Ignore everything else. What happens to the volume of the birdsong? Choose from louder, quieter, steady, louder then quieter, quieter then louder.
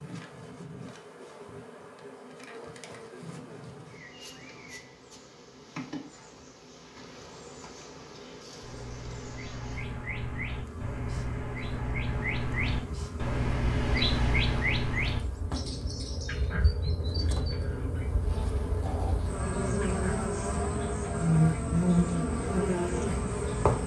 louder then quieter.